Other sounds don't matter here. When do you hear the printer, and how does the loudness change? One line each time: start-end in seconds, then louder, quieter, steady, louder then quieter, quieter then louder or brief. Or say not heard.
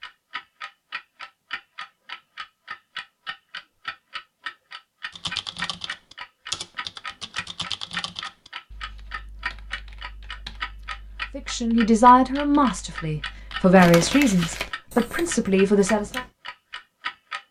not heard.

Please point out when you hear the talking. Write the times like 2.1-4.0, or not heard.
11.3-16.2.